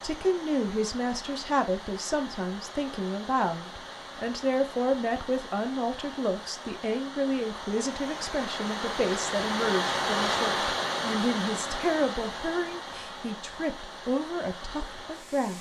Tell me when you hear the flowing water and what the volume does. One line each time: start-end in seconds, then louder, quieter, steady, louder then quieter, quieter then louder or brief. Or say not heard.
0.0-15.5 louder then quieter.